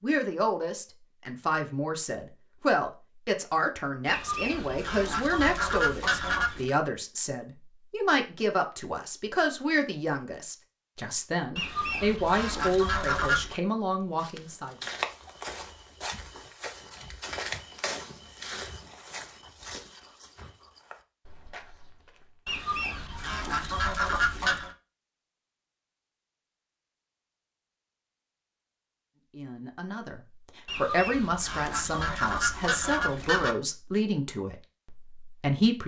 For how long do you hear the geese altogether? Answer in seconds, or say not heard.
10 s.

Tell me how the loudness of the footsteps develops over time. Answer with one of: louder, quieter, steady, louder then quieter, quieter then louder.
quieter.